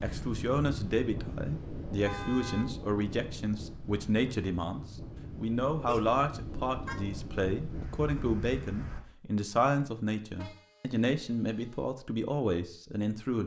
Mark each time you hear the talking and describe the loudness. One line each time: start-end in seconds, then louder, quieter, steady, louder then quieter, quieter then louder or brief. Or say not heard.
0.0-13.4 steady.